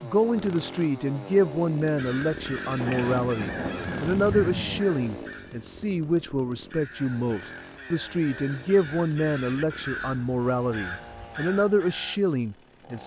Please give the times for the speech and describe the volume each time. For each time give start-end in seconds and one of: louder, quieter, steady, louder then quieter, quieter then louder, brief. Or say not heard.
0.0-13.0 steady.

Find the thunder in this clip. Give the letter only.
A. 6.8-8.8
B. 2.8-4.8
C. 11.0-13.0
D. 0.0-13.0
B.